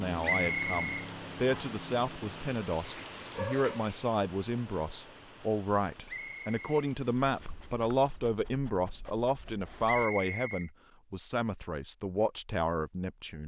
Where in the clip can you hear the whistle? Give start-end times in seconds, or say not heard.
0.2-1.8, 6.0-6.8, 9.8-10.7.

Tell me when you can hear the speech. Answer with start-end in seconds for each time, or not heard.
0.0-13.4.